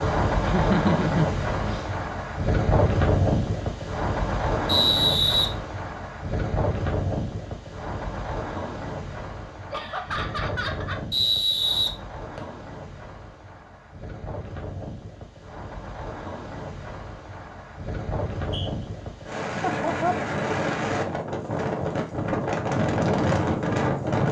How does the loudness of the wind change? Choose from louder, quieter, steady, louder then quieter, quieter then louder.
quieter then louder.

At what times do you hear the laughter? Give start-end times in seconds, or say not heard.
0.5-1.9, 9.7-11.1, 19.6-20.2.